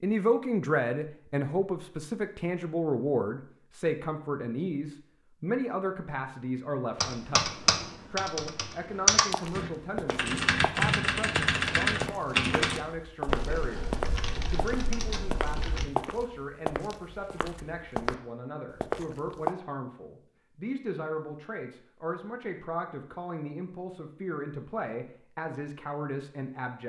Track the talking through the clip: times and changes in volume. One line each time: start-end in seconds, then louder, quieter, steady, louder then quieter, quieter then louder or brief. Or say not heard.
0.0-26.8 quieter.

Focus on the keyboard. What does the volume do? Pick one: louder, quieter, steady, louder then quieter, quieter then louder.
louder then quieter.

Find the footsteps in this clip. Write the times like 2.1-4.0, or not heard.
9.3-18.1, 18.8-19.5.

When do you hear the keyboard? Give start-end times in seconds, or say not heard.
7.0-15.9.